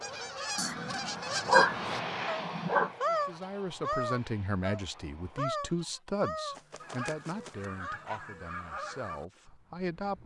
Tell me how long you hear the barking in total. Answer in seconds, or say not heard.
4 s.